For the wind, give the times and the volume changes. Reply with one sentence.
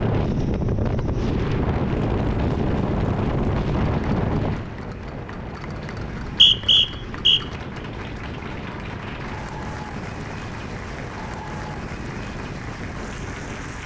You can hear the wind from 0.0 to 13.8 s, getting quieter.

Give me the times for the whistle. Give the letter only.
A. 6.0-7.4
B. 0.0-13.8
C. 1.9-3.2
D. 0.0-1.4
A.